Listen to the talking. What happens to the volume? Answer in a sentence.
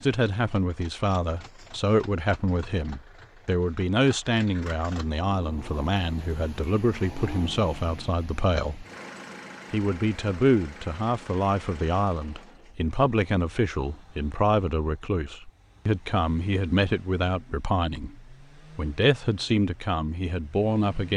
The volume of the talking stays about the same.